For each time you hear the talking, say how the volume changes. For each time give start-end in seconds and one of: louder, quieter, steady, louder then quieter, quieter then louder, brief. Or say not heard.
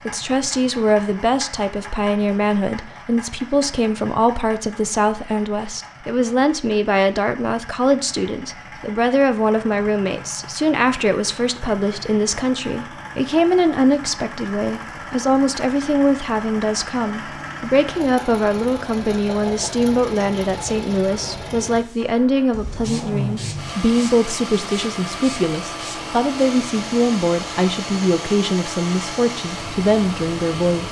0.1-30.8 steady.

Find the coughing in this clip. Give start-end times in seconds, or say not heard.
not heard.